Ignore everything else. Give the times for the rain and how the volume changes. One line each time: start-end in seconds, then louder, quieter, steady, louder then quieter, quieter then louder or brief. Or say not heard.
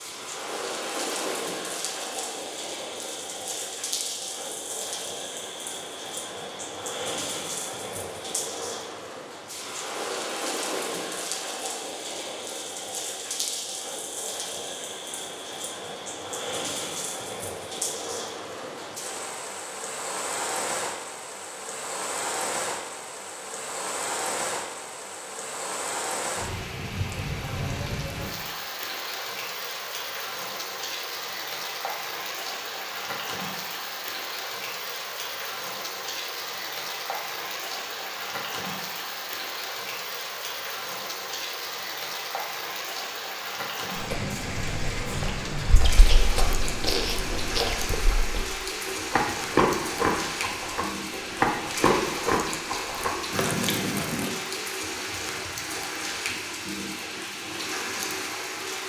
0.0-58.8 steady.